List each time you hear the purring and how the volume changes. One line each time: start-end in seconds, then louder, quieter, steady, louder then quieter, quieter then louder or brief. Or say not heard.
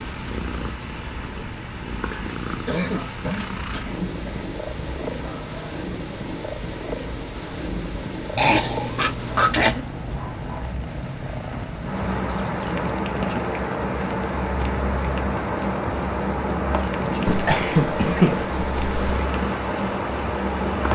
0.0-20.9 steady.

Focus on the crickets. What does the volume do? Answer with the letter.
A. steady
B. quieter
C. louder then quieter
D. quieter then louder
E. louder
E.